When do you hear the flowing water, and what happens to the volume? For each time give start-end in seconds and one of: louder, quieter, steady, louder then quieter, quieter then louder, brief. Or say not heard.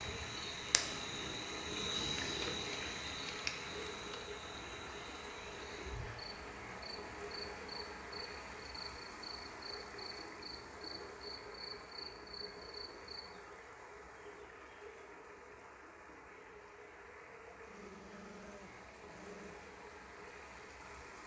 0.0-21.2 quieter.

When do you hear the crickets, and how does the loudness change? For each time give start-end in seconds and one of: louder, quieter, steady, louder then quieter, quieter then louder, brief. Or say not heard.
0.0-13.3 quieter.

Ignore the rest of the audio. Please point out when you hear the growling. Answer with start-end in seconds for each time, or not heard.
17.6-19.7.